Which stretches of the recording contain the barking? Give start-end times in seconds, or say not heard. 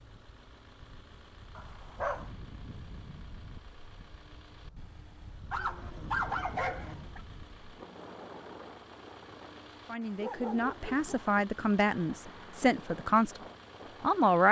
1.6-2.3, 5.5-7.2, 10.2-11.2.